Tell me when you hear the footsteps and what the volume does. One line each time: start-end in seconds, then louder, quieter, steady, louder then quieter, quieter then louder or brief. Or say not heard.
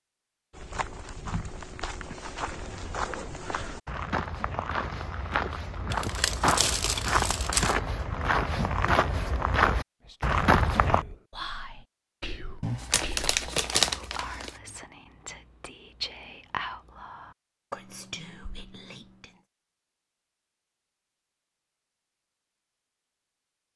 0.5-11.1 louder.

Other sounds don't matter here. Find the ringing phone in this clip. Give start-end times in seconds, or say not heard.
not heard.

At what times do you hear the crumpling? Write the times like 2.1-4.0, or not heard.
5.9-7.8, 12.6-14.6.